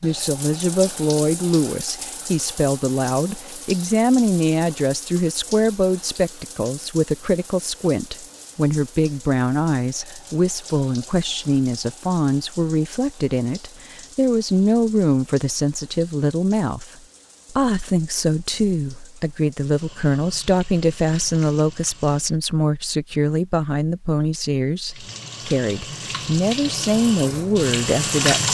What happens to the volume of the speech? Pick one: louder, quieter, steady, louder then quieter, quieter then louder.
steady.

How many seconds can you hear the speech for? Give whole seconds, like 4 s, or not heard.
28 s.